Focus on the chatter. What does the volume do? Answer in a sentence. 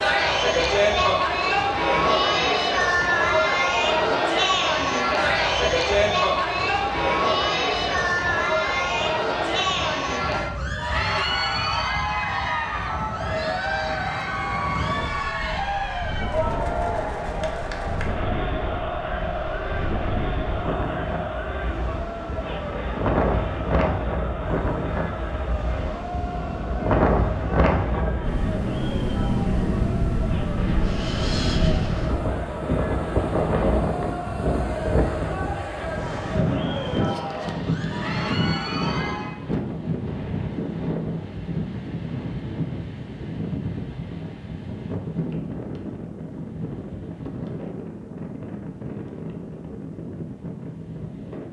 The volume of the chatter goes down.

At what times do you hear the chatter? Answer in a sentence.
You can hear the chatter from 0.0 to 39.4 s.